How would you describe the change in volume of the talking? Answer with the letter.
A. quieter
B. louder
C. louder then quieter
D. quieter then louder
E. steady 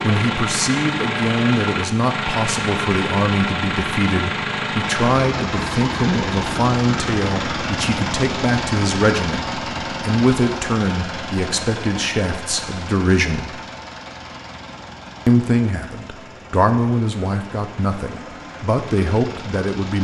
E.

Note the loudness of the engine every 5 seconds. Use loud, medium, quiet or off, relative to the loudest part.
loud, loud, medium, quiet.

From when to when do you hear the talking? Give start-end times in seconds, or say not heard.
0.0-13.6, 15.2-19.9.